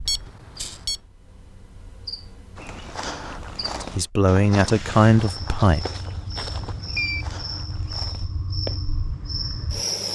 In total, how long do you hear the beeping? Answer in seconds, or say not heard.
2 s.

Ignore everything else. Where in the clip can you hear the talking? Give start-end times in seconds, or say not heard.
3.8-5.8.